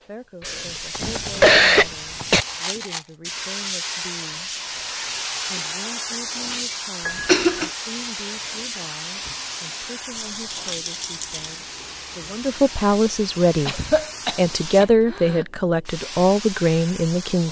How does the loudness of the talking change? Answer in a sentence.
The loudness of the talking goes up.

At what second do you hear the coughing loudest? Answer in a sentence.
The volume of the coughing peaks at 2 seconds.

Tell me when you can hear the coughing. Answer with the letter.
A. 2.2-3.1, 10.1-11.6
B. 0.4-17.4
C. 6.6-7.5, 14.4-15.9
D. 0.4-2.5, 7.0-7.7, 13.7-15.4
D.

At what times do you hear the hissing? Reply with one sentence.
You can hear the hissing from 0.4 to 17.4 s.